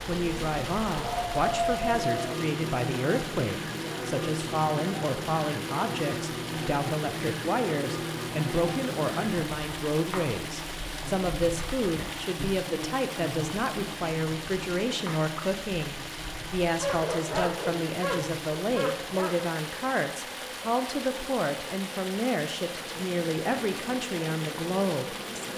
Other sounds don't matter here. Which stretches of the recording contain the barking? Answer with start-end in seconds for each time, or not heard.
0.9-2.4, 16.8-19.4.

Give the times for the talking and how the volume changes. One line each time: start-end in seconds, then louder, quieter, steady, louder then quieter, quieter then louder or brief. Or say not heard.
0.0-25.5 steady.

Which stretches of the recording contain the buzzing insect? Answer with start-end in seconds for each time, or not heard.
0.0-25.5.